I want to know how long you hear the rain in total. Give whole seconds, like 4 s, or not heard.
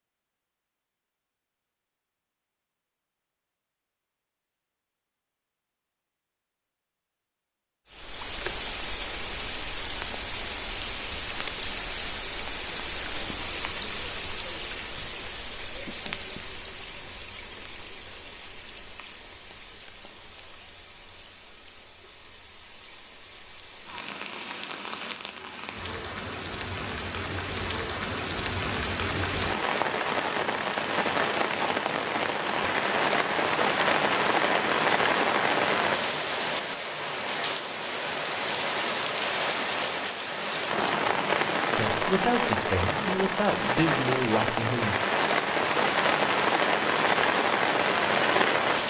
41 s.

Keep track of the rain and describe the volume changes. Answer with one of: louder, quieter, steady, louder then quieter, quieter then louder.
quieter then louder.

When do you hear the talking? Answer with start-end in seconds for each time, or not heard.
41.8-45.0.